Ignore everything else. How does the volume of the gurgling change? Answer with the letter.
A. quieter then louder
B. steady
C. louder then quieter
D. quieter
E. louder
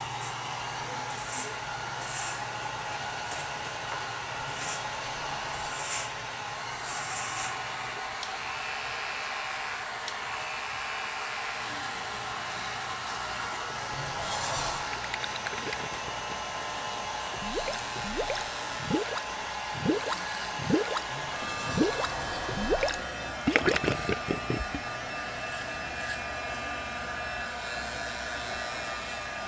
E.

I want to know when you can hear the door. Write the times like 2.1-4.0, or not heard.
4.4-5.8, 13.9-14.9, 21.1-22.9.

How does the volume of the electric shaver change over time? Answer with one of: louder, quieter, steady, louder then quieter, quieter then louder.
steady.